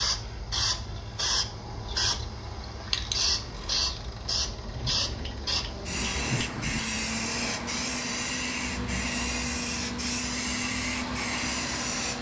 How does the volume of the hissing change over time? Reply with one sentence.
The volume of the hissing stays about the same.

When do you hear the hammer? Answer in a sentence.
The hammer can be heard from 4.7 to 7.0 s.